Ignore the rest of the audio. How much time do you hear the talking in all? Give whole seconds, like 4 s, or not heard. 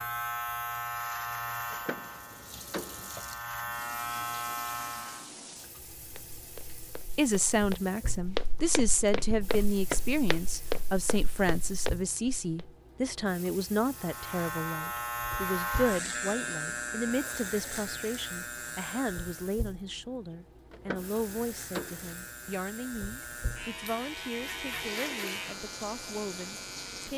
20 s.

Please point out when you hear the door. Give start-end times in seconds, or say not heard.
1.7-3.1, 20.7-22.1.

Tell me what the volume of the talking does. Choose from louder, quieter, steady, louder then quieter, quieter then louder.
quieter.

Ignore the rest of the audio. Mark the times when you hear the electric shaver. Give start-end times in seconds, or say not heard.
0.0-5.3, 13.9-19.6, 21.1-27.1.